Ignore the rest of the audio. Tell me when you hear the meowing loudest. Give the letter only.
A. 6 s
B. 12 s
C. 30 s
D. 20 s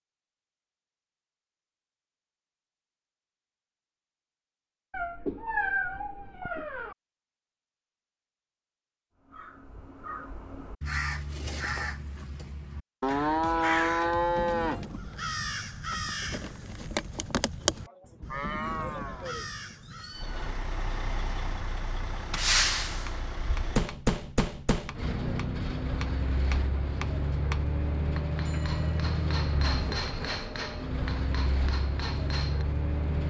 A.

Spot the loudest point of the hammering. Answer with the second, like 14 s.
30 s.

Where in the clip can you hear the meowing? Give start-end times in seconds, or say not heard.
4.9-7.0, 18.1-20.5.